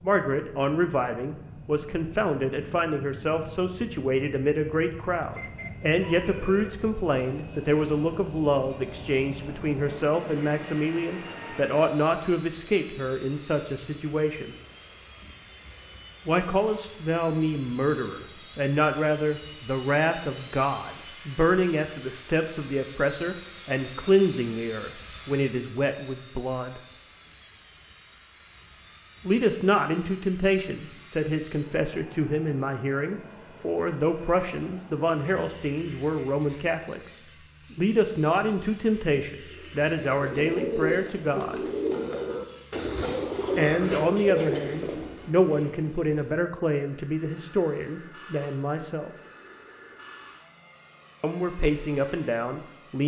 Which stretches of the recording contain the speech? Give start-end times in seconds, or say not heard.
0.0-14.6, 16.2-26.8, 29.2-37.1, 37.7-41.6, 43.5-49.1, 51.2-53.0.